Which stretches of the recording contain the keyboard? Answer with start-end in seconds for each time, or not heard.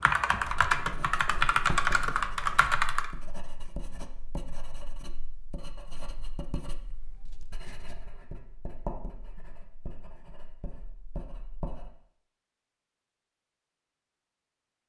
0.0-3.1.